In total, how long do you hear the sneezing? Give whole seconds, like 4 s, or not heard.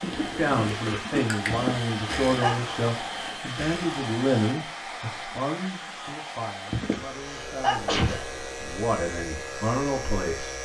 3 s.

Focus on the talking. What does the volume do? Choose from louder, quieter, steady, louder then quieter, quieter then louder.
quieter then louder.